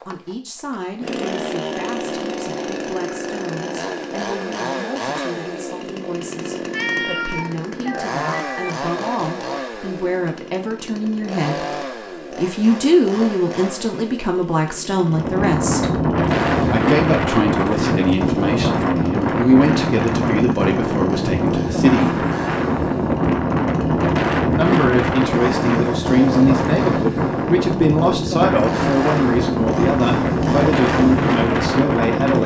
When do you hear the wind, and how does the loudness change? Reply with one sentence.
You can hear the wind from 15.0 to 32.4 s, at a steady volume.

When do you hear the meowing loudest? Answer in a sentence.
The loudest moment of the meowing is at 7 seconds.